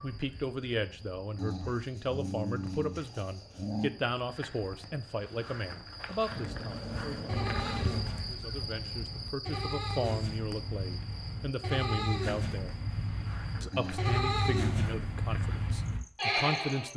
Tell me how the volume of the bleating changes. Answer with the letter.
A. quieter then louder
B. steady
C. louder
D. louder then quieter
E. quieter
C.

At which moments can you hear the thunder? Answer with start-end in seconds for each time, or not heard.
not heard.